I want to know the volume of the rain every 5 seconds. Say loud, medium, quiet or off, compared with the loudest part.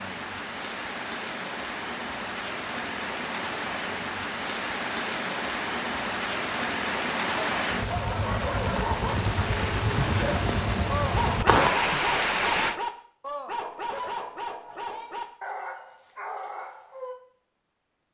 medium, loud, loud, off.